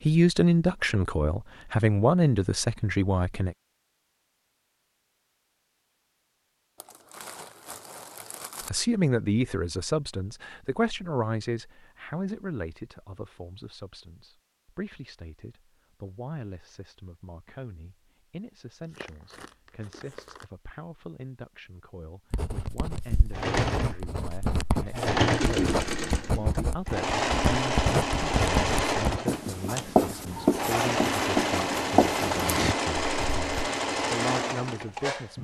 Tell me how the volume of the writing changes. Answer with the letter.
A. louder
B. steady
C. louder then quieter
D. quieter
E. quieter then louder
A.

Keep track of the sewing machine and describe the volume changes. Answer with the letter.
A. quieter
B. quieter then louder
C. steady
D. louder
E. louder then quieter
C.